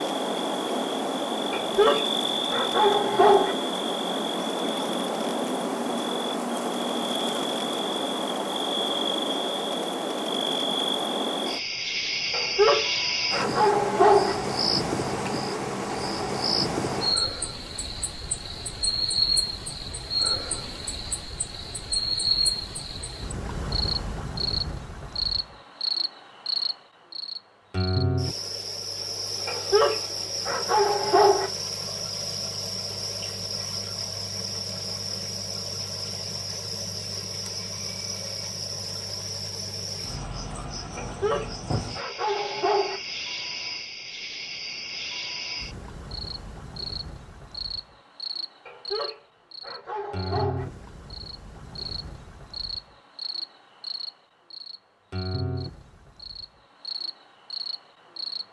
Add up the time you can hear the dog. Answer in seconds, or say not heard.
10 s.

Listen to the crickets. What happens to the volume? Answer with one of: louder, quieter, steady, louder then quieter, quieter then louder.
quieter.